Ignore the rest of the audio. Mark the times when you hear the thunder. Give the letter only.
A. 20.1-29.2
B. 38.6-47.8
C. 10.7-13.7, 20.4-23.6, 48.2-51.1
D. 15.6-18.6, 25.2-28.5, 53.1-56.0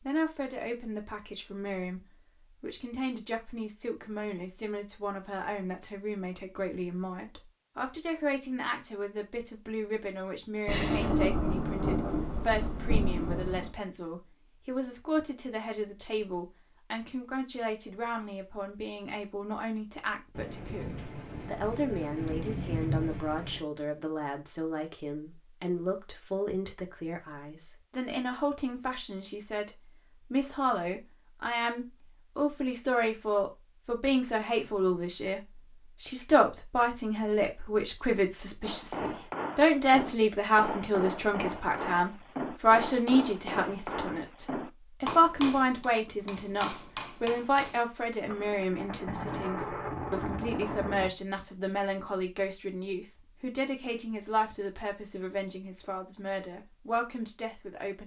C.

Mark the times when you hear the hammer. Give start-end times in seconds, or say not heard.
38.6-47.8.